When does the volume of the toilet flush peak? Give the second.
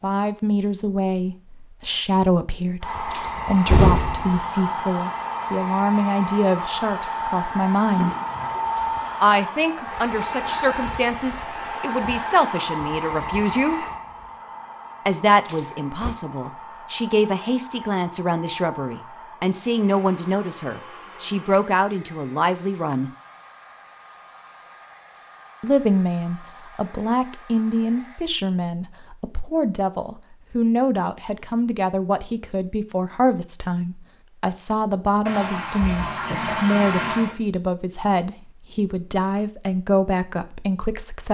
37 s.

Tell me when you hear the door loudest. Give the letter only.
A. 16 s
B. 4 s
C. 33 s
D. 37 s
B.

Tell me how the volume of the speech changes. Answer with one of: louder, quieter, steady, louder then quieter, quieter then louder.
steady.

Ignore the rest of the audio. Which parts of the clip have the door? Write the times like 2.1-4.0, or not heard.
3.1-4.3, 15.4-16.1, 35.8-36.6.